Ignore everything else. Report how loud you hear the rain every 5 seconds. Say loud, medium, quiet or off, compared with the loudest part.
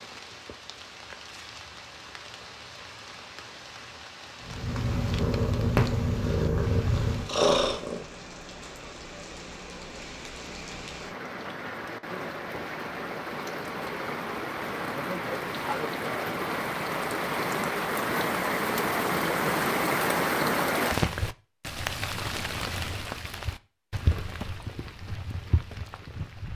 quiet, quiet, medium, loud, loud, medium.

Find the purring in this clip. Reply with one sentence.
You can hear the purring from 4.4 to 8.1 s.